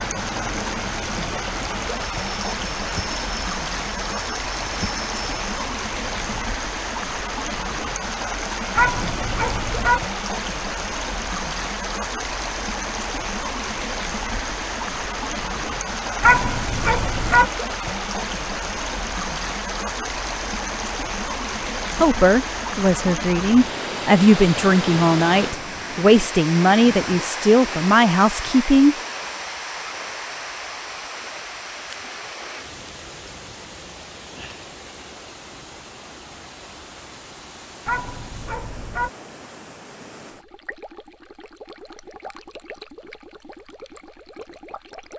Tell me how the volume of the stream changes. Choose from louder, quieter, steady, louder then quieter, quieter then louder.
quieter.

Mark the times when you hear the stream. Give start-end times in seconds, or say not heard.
0.0-45.1.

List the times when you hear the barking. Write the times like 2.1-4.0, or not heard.
8.8-10.0, 16.2-17.5, 37.9-39.1.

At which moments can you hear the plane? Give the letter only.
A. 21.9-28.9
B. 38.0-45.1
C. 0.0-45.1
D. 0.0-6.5
D.